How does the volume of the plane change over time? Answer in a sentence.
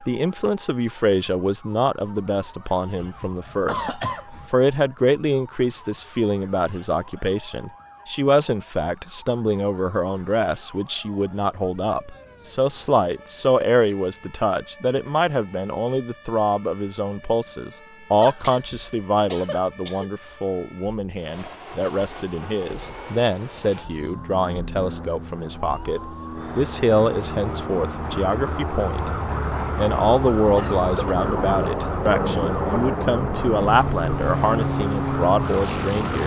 The loudness of the plane goes up.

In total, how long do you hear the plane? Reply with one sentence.
You can hear the plane for 15 seconds altogether.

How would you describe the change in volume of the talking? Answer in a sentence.
The loudness of the talking stays about the same.